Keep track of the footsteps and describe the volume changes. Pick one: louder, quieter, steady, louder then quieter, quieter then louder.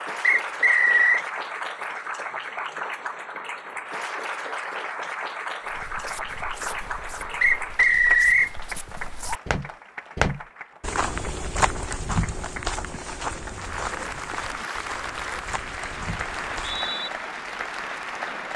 louder then quieter.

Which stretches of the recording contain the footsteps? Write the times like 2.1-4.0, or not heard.
5.7-16.9.